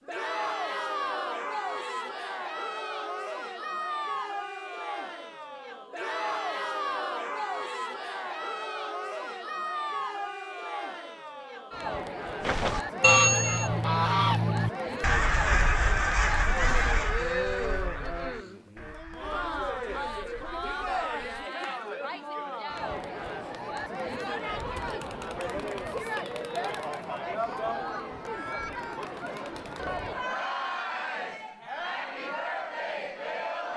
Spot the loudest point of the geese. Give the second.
13 s.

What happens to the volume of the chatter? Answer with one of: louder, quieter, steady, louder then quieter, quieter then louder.
steady.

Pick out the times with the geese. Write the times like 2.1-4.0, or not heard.
12.4-21.5.